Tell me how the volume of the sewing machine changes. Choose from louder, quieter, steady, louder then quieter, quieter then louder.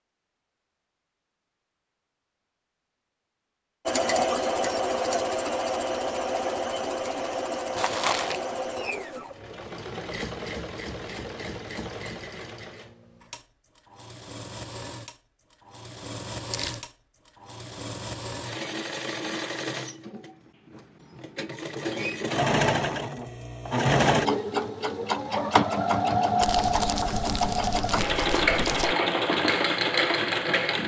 quieter then louder.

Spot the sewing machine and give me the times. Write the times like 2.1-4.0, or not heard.
3.9-30.8.